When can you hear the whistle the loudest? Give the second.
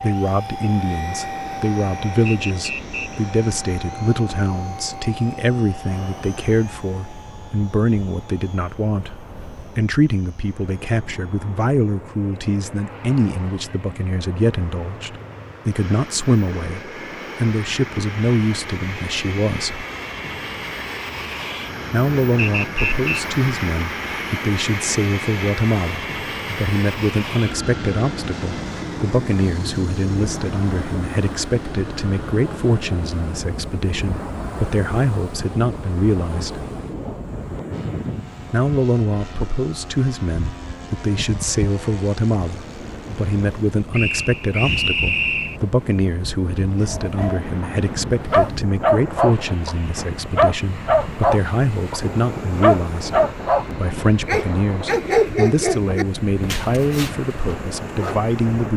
45 s.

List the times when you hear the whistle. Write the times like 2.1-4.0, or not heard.
2.2-3.2, 22.4-23.2, 43.9-45.6.